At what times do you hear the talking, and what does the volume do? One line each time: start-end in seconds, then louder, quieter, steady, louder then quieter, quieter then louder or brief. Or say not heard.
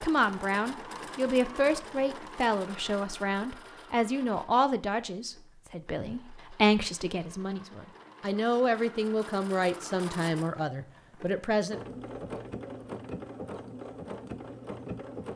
0.0-11.8 steady.